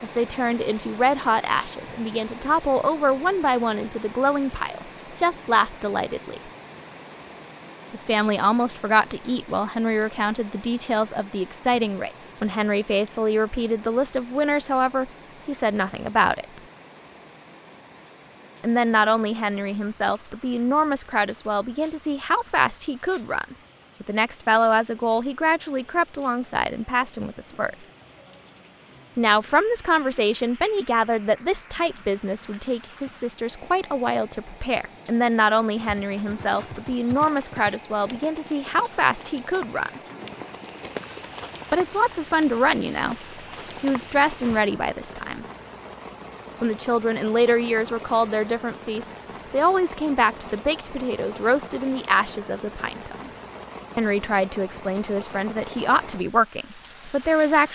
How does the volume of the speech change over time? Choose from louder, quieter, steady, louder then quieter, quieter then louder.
steady.